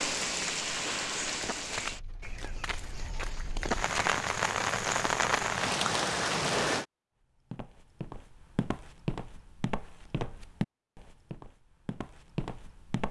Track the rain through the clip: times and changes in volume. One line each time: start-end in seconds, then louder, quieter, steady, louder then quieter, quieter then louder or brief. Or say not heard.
0.0-6.8 quieter then louder.